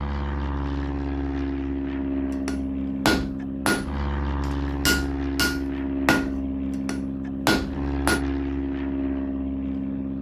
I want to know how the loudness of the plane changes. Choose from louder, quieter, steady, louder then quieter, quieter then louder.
steady.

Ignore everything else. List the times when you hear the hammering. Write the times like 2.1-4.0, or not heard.
2.5-8.2.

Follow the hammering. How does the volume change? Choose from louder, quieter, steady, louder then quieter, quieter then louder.
quieter then louder.